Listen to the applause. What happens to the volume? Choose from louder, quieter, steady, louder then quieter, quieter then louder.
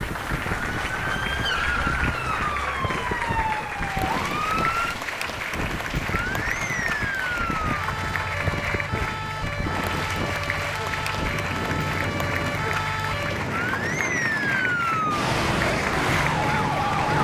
steady.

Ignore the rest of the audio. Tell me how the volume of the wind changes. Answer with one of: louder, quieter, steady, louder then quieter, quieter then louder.
steady.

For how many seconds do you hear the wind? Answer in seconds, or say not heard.
17 s.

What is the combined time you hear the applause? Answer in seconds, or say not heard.
17 s.